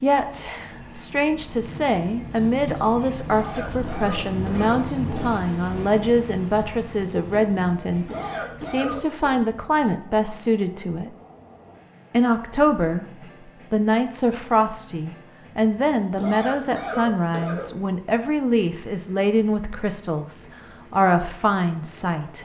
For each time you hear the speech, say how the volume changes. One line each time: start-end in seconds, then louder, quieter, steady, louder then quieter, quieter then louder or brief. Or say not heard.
0.0-11.1 steady
12.1-13.1 brief
13.7-22.4 steady.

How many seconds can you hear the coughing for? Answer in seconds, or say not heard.
5 s.